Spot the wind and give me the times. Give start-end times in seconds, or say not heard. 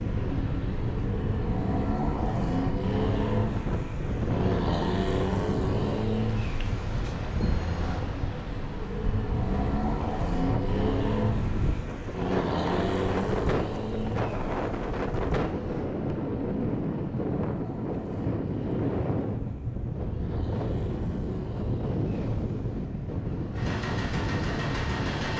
0.0-25.3.